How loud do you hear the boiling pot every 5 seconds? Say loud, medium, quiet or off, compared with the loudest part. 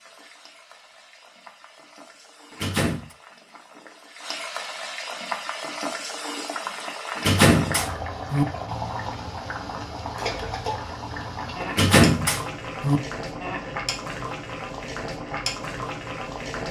medium, loud, loud, loud.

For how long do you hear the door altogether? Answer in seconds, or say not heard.
3 s.